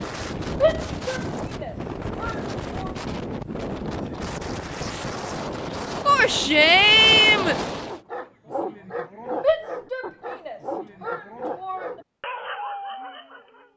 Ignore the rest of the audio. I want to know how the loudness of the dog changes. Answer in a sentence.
The loudness of the dog stays about the same.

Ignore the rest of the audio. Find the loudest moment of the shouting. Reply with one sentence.
The volume of the shouting peaks at 7 seconds.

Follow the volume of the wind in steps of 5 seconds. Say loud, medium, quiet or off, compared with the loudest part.
loud, loud, off.